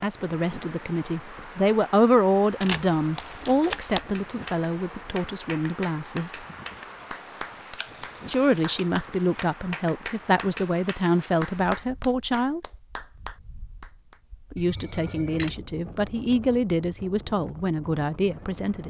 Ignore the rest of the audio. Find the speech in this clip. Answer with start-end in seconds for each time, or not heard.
0.0-6.3, 8.2-12.6, 14.5-18.8.